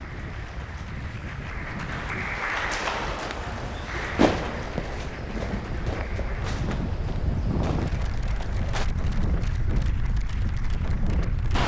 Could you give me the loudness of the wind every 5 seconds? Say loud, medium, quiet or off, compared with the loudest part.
medium, loud, loud.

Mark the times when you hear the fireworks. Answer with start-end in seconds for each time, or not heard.
4.2-8.8.